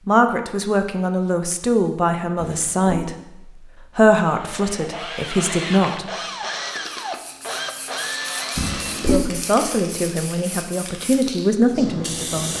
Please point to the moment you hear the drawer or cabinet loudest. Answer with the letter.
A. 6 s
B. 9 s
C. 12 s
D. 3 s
B.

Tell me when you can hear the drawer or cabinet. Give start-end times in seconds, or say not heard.
2.4-3.1, 8.6-9.2.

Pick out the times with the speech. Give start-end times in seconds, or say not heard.
0.1-6.0, 9.1-12.5.